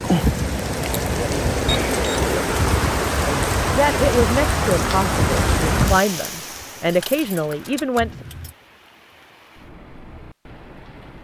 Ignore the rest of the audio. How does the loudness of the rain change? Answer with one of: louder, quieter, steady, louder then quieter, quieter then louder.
quieter.